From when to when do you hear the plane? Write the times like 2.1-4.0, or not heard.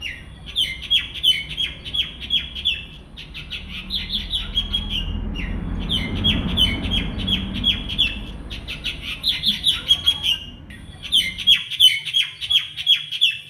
0.0-11.6.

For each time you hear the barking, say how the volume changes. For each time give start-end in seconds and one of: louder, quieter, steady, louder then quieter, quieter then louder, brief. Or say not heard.
not heard.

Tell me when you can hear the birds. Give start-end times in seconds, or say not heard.
0.0-13.4.